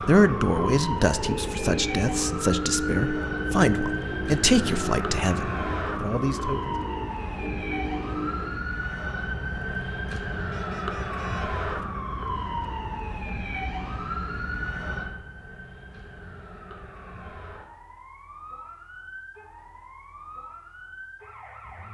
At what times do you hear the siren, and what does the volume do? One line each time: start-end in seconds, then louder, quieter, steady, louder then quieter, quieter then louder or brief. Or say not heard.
0.0-21.8 quieter.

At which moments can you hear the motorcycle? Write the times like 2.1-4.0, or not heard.
0.1-8.6.